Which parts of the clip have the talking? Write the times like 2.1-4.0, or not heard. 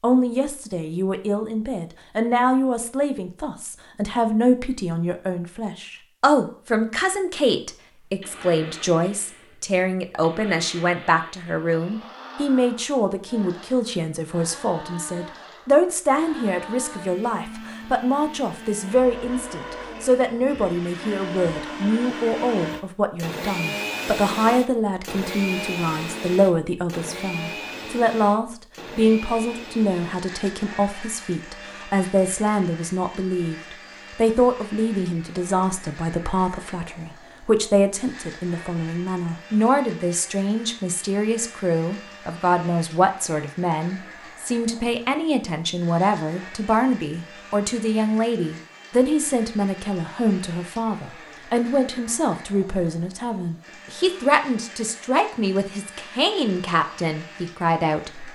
0.0-58.3.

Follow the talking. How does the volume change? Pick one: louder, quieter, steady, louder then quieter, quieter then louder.
steady.